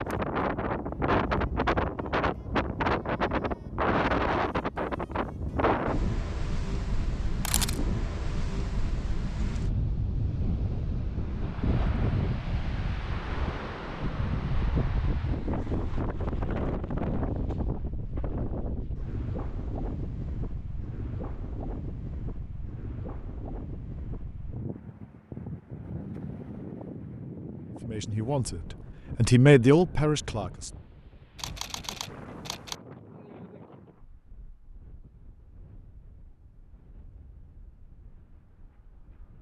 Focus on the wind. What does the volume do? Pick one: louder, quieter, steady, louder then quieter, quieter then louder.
quieter.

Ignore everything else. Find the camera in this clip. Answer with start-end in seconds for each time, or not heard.
7.2-8.0, 31.4-32.8.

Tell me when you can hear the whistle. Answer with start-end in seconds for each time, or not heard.
not heard.